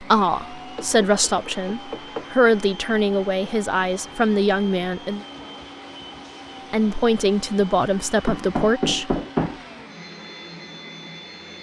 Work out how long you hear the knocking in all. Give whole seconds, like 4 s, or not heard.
3 s.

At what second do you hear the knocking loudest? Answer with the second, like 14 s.
9 s.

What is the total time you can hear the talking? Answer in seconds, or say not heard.
8 s.